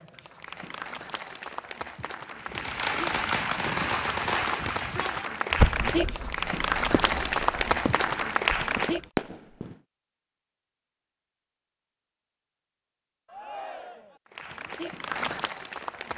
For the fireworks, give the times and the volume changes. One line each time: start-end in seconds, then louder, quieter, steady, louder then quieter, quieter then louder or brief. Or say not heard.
2.5-9.8 quieter then louder.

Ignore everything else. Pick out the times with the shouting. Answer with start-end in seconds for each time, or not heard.
4.5-5.2, 13.2-14.2.